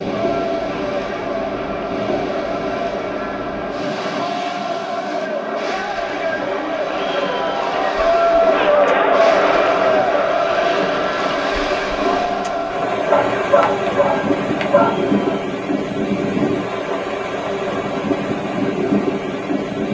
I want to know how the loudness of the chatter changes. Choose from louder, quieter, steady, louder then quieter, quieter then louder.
louder then quieter.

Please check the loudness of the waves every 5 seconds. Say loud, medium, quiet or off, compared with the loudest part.
medium, medium, loud, loud.